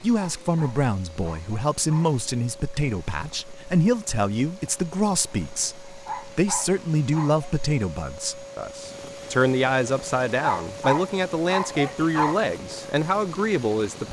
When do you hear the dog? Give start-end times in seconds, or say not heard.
0.4-2.1, 6.0-7.5, 10.4-12.4.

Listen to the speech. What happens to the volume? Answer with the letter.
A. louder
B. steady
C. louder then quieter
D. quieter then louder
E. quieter
B.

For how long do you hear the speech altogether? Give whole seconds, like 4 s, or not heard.
14 s.